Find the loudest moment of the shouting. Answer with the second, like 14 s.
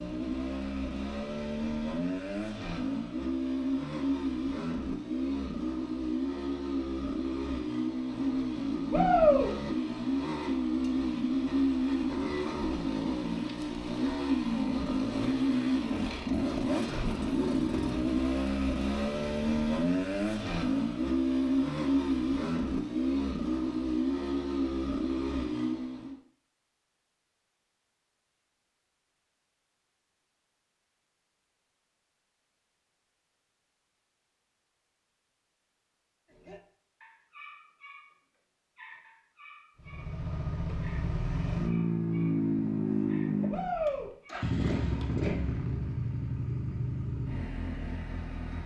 9 s.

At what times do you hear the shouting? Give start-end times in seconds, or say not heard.
8.9-9.5, 43.5-44.1.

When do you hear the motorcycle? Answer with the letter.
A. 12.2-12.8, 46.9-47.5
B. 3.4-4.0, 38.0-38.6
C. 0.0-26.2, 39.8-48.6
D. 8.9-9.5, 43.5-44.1
C.